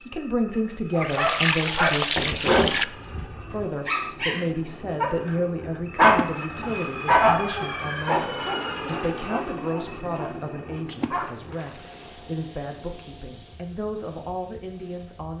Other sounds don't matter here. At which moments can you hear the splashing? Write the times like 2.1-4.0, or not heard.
1.0-2.9, 6.0-7.2, 10.8-12.2.